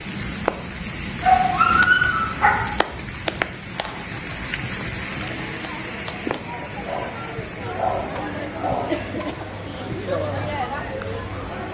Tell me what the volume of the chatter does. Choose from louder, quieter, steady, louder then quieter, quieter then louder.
louder.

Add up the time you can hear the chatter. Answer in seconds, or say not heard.
8 s.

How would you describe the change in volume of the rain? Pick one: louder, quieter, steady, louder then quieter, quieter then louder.
quieter.